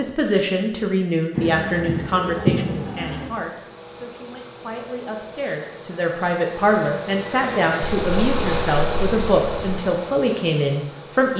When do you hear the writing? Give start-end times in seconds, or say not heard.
1.4-3.3, 8.0-9.8.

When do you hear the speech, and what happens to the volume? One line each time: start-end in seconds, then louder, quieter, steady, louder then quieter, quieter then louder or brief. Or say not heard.
0.0-11.3 quieter then louder.